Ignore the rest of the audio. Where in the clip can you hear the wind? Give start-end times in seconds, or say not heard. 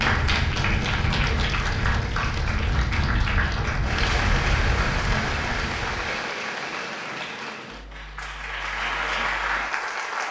0.0-6.1.